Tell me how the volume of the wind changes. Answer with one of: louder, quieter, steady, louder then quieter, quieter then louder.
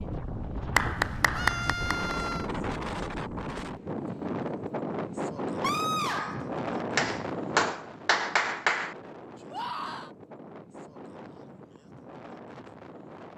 quieter.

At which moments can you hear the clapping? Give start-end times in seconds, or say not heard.
0.8-2.1, 7.0-8.9.